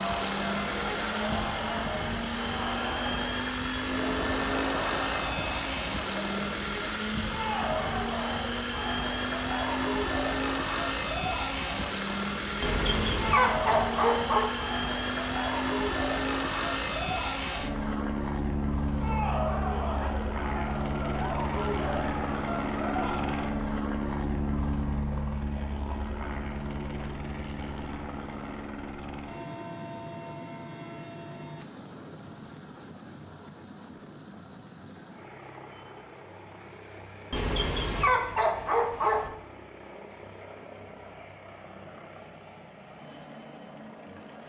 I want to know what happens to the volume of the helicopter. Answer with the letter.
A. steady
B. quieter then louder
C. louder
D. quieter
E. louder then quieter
D.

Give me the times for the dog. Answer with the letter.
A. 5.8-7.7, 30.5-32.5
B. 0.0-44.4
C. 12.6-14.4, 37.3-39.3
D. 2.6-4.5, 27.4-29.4
C.